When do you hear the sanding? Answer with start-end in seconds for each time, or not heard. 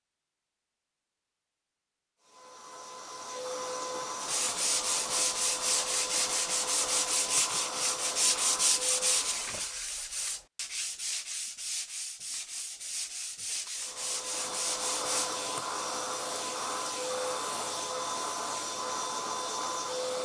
4.2-15.3.